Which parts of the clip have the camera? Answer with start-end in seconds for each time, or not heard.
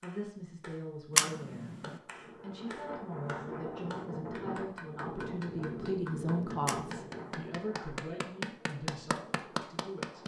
1.1-1.9, 6.7-7.5.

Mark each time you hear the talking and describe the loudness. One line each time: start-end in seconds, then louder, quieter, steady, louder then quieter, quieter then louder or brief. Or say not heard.
0.0-1.7 brief
2.4-10.2 louder then quieter.